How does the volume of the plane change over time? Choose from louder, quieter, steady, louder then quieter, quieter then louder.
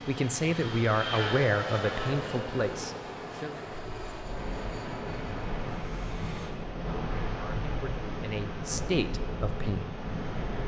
quieter.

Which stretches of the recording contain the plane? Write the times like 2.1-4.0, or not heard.
0.0-6.5.